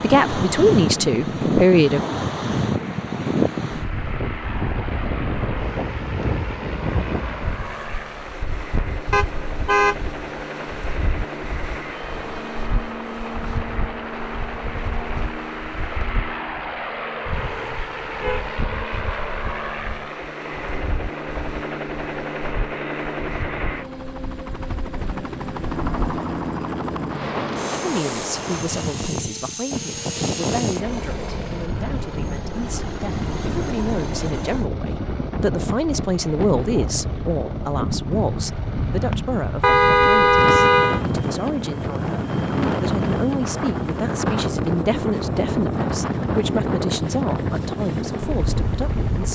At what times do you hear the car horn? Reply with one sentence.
You can hear the car horn from 9.1 to 10.1 s, from 17.6 to 18.4 s and from 39.6 to 41.0 s.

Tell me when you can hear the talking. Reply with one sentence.
You can hear the talking from 0.0 to 2.0 s and from 27.8 to 49.3 s.